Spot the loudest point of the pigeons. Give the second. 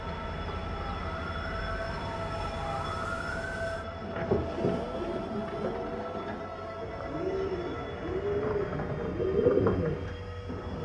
10 s.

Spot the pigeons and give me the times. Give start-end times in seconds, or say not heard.
4.0-10.7.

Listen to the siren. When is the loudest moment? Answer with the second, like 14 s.
3 s.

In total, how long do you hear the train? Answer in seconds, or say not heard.
11 s.